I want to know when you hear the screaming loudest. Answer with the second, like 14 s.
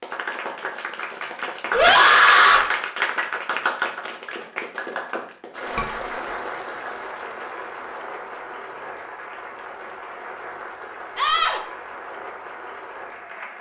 2 s.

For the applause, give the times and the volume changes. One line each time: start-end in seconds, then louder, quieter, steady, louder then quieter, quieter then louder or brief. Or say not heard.
0.0-13.5 quieter.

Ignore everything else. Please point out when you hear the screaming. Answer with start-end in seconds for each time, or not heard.
1.7-2.6, 11.2-11.6.